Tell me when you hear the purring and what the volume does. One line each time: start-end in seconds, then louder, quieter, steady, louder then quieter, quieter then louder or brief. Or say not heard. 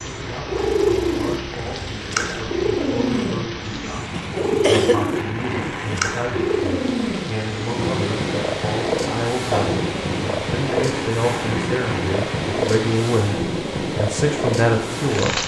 0.0-15.4 steady.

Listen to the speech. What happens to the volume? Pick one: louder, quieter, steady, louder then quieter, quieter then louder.
louder.